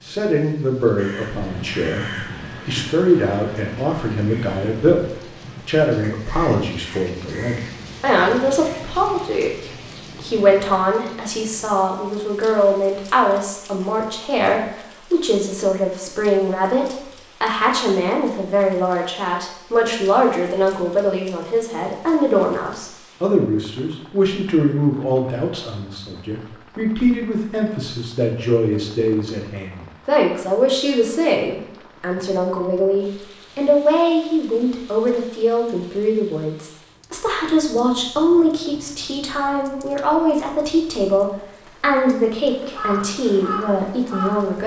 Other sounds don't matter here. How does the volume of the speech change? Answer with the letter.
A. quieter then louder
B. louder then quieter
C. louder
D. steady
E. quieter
D.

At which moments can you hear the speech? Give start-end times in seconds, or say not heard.
0.0-44.6.